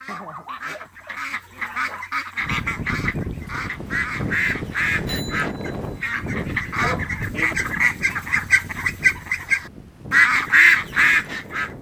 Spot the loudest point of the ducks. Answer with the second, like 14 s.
11 s.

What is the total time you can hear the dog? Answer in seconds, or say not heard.
3 s.